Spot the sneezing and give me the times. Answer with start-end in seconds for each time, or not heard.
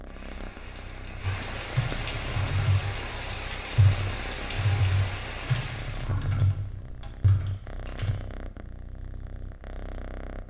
not heard.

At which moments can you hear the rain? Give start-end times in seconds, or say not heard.
0.0-6.1.